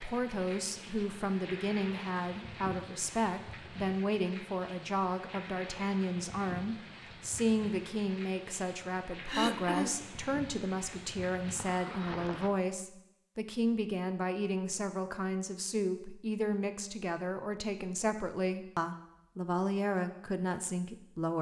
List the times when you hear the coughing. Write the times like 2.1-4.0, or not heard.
9.2-9.9.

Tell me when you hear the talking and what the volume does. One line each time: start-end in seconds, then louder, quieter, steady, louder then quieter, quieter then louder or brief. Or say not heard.
0.0-21.3 steady.